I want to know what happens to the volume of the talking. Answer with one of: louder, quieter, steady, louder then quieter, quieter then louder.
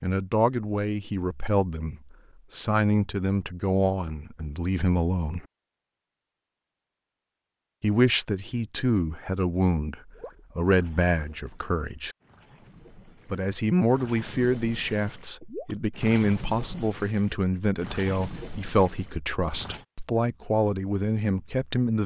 steady.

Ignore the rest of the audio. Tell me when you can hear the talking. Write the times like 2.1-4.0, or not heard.
0.0-5.5, 7.8-12.2, 13.3-22.0.